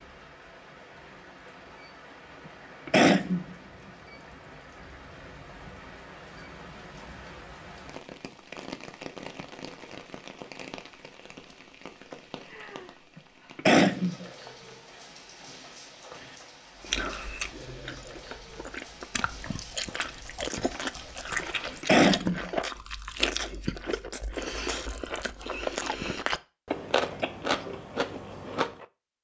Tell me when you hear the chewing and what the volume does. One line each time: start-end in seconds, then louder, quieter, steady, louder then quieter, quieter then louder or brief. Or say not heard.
16.8-28.9 louder.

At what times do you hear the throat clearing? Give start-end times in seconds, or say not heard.
2.9-3.5, 13.6-14.2, 21.8-22.5.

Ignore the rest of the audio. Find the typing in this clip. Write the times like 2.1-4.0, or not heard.
not heard.